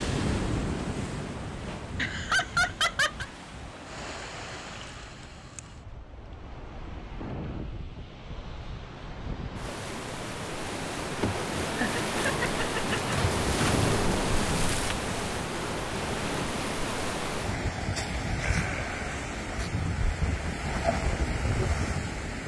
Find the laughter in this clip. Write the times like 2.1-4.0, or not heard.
1.9-3.2, 11.2-13.2, 18.4-19.0.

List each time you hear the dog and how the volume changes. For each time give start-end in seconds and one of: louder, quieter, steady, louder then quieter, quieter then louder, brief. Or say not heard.
not heard.